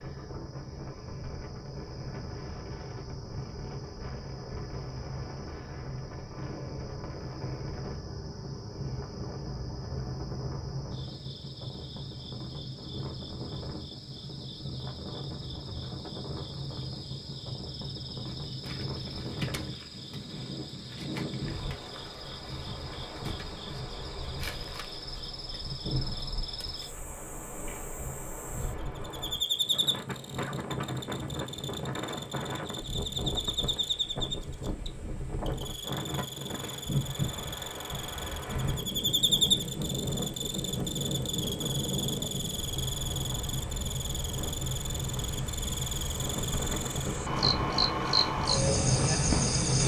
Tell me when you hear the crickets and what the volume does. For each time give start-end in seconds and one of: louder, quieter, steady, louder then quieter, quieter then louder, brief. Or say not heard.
0.0-49.8 louder.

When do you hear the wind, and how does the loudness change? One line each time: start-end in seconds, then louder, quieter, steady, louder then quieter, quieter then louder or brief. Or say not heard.
0.0-49.8 louder.